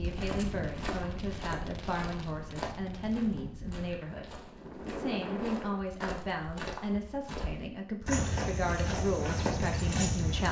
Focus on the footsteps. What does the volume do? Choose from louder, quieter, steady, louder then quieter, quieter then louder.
louder.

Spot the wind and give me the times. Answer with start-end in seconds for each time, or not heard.
0.0-5.8.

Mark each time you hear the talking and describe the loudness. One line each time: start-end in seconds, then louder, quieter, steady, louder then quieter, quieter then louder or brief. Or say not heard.
0.0-10.4 steady.